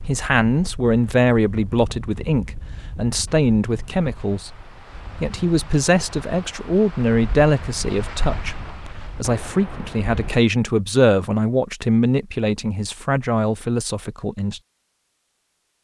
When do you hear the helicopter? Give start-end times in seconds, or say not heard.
not heard.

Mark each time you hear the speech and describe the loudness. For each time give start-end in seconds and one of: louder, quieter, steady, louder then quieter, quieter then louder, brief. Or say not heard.
0.0-14.6 steady.